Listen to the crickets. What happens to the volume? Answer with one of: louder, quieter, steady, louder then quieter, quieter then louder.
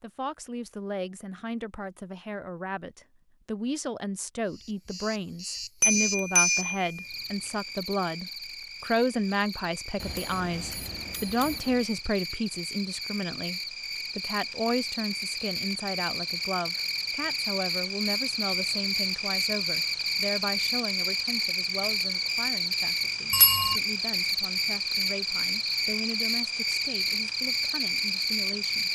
louder.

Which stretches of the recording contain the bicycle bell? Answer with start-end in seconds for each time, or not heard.
5.8-7.5, 10.0-11.8, 23.3-23.8.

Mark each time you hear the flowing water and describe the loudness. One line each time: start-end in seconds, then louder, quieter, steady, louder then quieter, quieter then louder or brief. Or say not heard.
not heard.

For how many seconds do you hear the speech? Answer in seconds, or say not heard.
29 s.